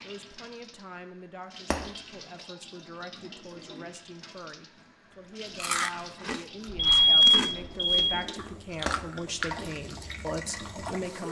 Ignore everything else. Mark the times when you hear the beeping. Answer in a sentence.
You can hear the beeping from 6.7 to 8.2 s.